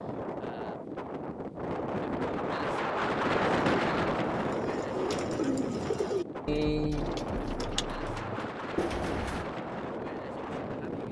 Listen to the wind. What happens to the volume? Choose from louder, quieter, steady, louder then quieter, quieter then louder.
louder then quieter.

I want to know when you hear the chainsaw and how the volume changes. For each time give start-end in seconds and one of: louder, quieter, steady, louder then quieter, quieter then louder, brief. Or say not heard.
not heard.